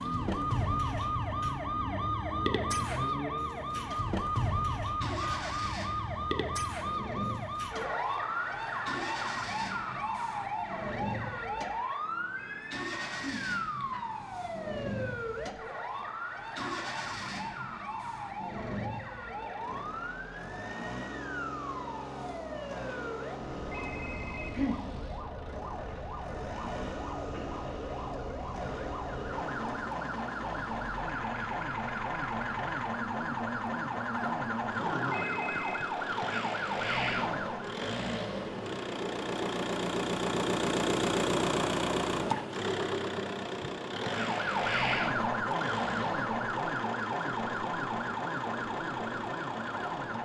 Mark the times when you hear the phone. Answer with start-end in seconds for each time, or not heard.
12.1-14.0, 23.4-24.8, 34.8-35.8.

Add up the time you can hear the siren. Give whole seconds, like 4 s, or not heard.
44 s.